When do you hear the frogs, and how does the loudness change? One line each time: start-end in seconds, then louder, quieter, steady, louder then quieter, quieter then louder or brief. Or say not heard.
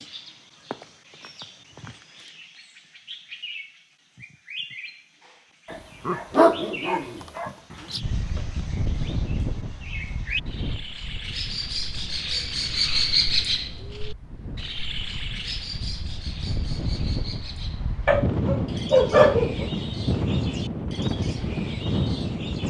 not heard.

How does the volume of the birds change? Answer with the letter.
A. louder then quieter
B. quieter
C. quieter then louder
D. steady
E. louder
A.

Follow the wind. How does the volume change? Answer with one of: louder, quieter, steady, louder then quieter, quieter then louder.
quieter then louder.